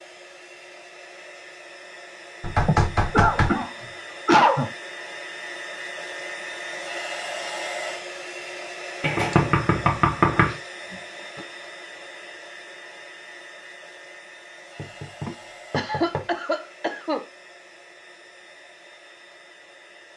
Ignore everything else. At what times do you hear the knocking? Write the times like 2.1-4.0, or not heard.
2.4-3.6, 9.0-10.6, 14.8-16.2.